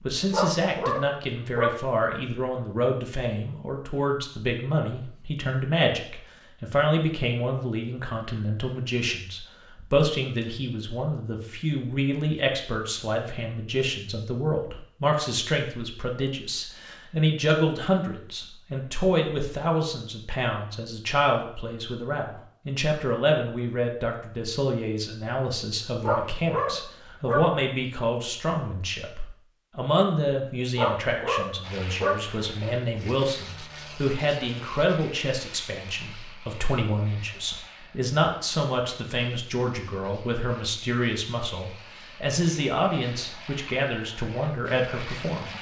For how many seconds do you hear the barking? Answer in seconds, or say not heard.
5 s.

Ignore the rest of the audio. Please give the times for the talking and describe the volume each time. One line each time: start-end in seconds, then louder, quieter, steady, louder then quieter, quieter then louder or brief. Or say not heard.
0.1-45.5 steady.